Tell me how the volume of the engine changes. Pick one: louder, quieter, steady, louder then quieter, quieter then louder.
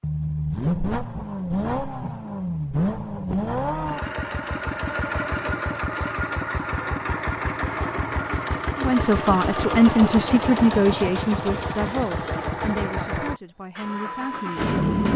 steady.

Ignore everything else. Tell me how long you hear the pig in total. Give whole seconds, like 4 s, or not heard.
not heard.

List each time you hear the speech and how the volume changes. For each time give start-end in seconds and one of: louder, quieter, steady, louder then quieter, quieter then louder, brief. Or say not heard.
8.8-15.1 quieter.